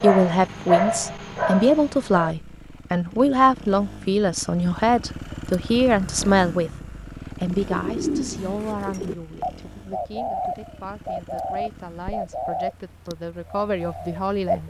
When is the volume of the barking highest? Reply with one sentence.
The volume of the barking peaks at 1 second.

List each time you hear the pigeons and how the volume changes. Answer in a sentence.
You can hear the pigeons from 7.5 to 14.6 s, getting quieter.